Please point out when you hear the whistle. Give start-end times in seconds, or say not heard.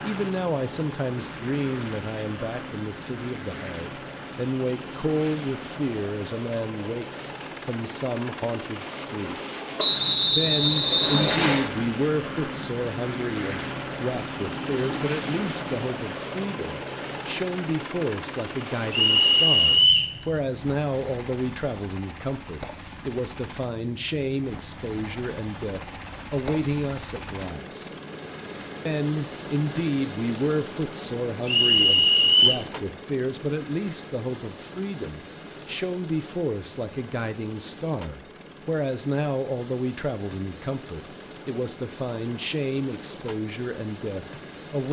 9.8-11.7, 18.9-20.1, 31.4-32.6.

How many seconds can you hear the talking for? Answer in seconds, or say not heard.
43 s.